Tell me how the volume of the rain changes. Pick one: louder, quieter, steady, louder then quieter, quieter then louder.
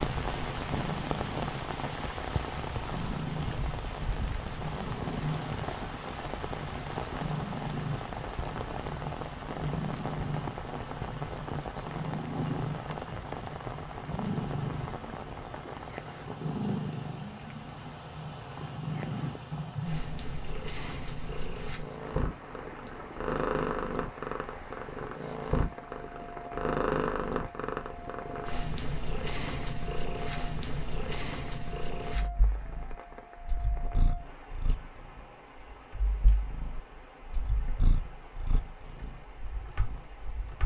quieter.